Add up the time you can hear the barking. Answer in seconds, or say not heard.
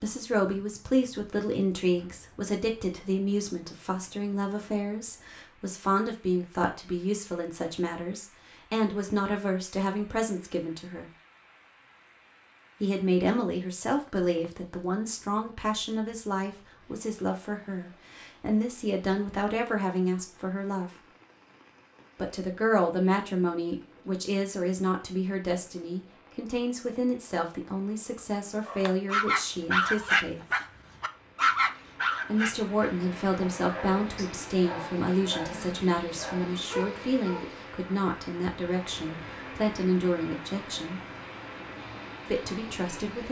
9 s.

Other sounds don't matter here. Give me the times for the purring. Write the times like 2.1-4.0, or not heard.
not heard.